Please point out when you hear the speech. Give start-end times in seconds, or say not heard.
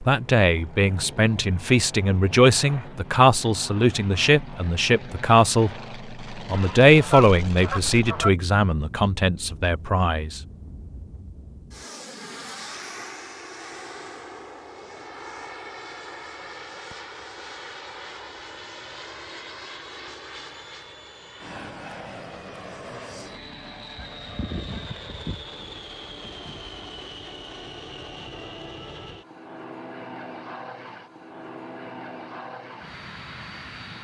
0.0-10.4.